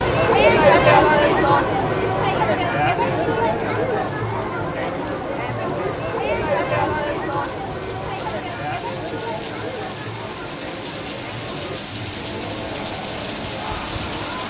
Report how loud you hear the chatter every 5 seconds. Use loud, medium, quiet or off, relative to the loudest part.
loud, medium, quiet.